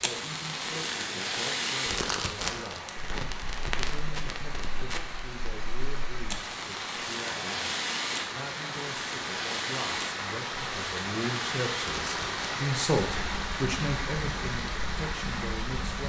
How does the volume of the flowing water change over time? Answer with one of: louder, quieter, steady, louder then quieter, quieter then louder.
louder.